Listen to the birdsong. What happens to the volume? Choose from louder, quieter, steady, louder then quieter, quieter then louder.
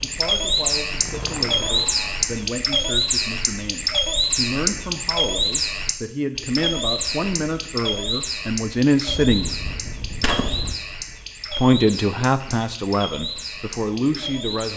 quieter.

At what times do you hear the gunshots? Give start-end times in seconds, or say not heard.
9.1-10.8.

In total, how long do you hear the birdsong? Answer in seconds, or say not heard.
15 s.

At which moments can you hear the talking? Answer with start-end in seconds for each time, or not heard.
0.0-9.6, 11.5-14.7.